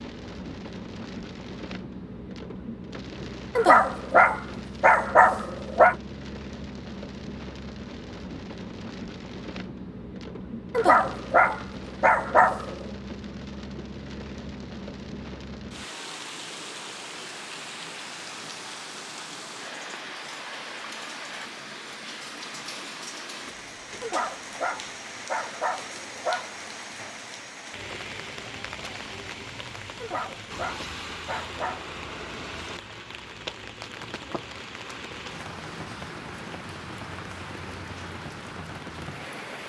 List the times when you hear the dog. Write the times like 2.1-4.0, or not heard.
3.5-6.0, 10.7-12.8, 24.0-26.6, 30.0-31.9.